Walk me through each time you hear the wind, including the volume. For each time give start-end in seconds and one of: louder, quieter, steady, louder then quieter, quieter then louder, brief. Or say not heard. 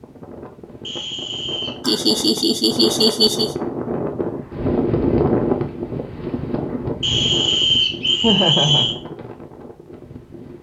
0.0-10.5 louder then quieter.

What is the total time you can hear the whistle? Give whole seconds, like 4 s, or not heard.
3 s.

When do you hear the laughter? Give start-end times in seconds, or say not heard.
1.9-3.5, 8.2-8.9.